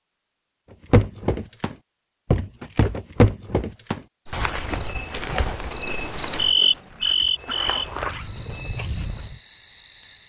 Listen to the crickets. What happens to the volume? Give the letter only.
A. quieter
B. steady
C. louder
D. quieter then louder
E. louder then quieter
E.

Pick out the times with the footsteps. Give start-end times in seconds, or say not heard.
0.9-9.4.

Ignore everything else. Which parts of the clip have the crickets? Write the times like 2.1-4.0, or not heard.
4.2-10.2.